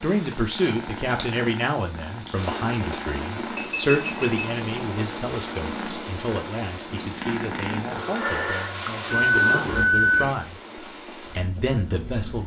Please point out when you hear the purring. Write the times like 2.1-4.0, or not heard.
0.0-9.8.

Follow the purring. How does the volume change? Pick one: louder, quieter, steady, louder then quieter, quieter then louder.
louder.